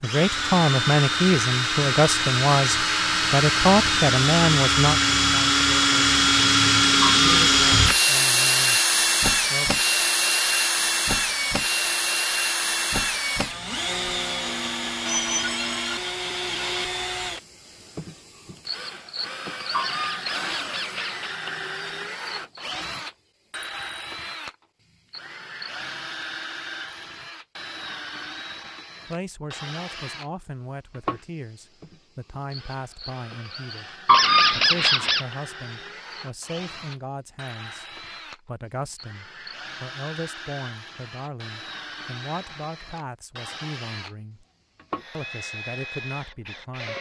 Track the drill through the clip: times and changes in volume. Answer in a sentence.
You can hear the drill from 0.0 to 46.9 s, getting quieter.